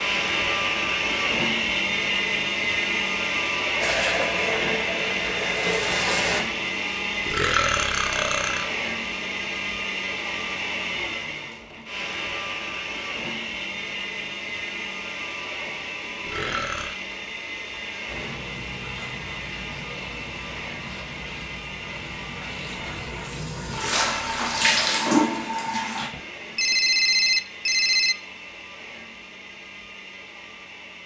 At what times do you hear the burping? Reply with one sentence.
The burping can be heard from 7.2 to 8.7 s, from 16.2 to 16.9 s and from 23.7 to 24.9 s.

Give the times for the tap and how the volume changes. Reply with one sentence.
The tap can be heard briefly from 3.8 to 6.5 s; and from 18.1 to 26.1 s, getting louder.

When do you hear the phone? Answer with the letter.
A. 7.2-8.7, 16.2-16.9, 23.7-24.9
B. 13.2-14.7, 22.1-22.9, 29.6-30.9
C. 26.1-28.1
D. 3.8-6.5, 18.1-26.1
C.